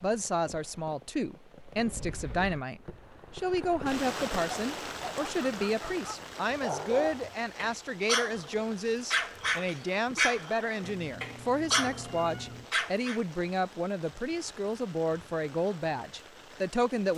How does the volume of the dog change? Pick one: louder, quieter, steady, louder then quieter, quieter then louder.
louder.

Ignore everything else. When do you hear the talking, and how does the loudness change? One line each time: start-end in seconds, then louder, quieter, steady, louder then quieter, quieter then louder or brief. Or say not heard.
0.0-17.1 steady.